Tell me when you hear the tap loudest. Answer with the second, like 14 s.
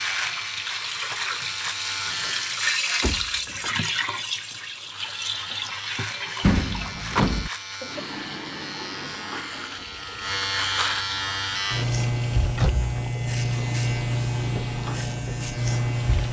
3 s.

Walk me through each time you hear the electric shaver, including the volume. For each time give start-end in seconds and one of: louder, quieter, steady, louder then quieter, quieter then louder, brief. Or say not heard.
0.0-2.6 brief
4.8-16.2 louder.